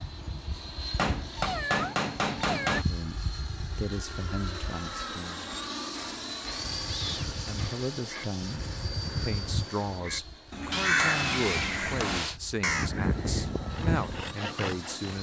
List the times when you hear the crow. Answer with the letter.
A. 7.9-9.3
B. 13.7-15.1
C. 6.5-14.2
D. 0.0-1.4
C.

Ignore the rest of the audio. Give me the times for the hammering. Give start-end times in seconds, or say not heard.
0.9-2.9, 6.0-8.3, 10.7-12.4.